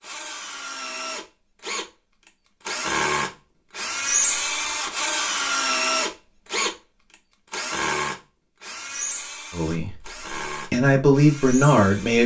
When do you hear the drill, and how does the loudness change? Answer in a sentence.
The drill can be heard from 0.0 to 12.2 s, getting louder then quieter.